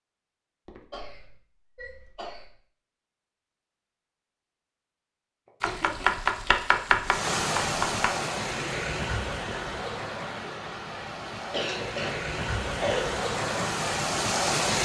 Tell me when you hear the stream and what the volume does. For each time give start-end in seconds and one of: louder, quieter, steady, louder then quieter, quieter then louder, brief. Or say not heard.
7.0-14.8 quieter then louder.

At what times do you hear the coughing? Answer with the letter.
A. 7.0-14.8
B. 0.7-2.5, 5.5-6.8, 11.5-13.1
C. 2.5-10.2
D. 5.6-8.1
B.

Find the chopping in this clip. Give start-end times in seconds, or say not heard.
5.6-8.1.